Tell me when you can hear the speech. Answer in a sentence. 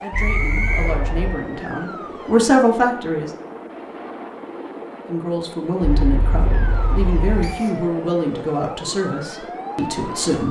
You can hear the speech from 0.0 to 3.3 s and from 5.0 to 10.4 s.